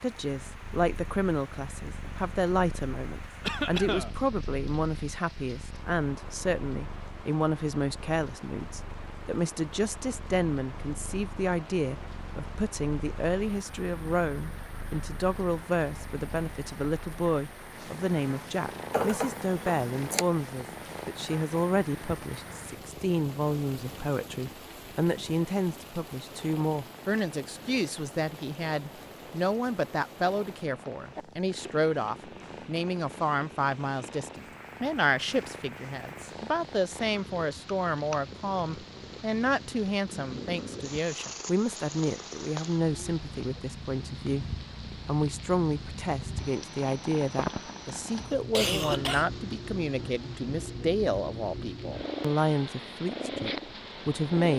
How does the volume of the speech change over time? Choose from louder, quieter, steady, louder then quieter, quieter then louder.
steady.